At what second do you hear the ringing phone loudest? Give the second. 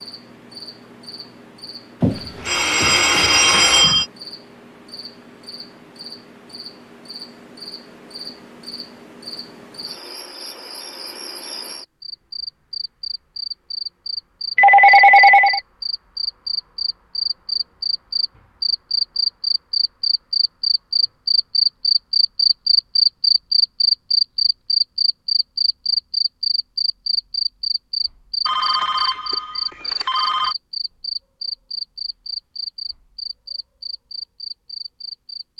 15 s.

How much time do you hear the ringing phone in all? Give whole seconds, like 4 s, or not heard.
5 s.